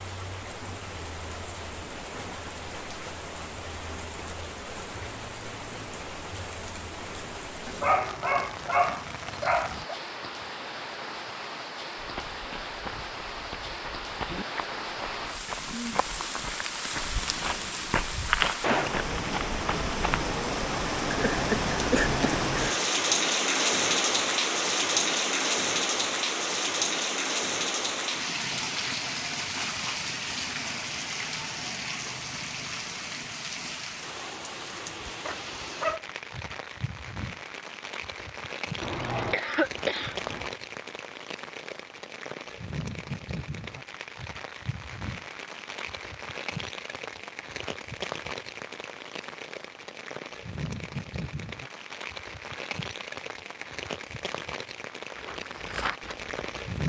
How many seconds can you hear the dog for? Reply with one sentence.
The dog can be heard for 3 seconds in total.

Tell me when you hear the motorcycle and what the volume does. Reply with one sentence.
The motorcycle can't be heard in this clip.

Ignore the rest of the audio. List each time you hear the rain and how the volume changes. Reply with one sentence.
The rain can be heard from 0.0 to 56.8 s, getting louder then quieter.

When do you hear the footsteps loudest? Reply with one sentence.
The volume of the footsteps peaks at 18 seconds.